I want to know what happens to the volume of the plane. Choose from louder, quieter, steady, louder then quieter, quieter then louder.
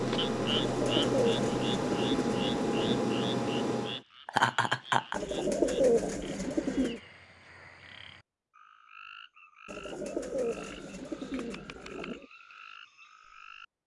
steady.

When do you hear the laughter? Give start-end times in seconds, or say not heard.
4.2-5.2.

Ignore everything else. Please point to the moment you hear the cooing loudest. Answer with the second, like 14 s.
6 s.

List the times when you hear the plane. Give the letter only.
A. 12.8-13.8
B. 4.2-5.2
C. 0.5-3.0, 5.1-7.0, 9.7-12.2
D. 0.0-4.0
D.